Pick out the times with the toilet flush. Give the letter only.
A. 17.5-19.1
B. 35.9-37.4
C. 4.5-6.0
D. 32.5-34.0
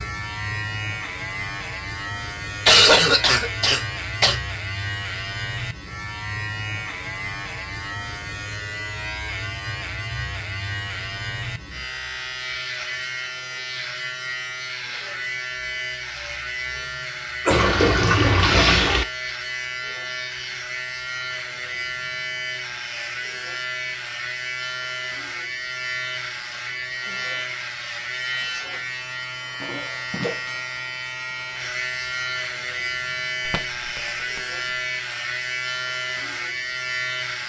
A.